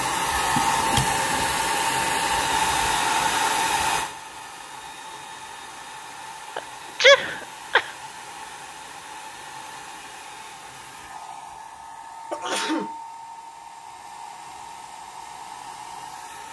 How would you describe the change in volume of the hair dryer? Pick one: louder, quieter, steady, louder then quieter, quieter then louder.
quieter.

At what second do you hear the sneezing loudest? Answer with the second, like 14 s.
7 s.